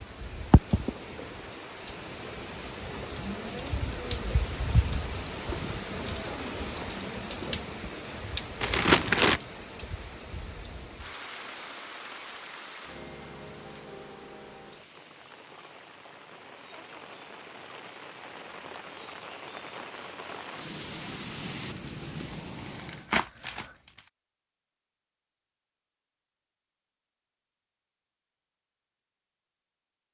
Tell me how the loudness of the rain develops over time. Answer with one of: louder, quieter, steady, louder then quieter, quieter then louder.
quieter then louder.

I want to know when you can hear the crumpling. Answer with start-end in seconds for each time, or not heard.
8.6-9.4, 22.7-24.0.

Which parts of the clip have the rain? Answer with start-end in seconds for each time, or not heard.
0.0-23.1.